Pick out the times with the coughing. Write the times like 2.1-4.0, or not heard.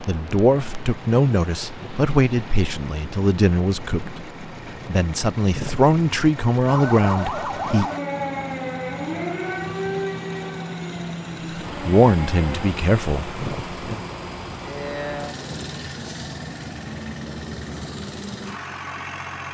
not heard.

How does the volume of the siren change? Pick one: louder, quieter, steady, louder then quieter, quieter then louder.
quieter.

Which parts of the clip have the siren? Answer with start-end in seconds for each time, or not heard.
6.7-12.7.